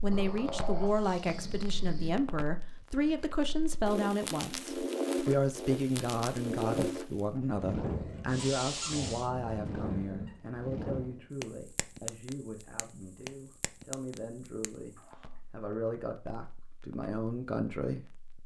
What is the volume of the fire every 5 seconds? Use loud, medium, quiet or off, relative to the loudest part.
medium, loud, medium, quiet.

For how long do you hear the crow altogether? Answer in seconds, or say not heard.
not heard.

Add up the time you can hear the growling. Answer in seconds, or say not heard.
5 s.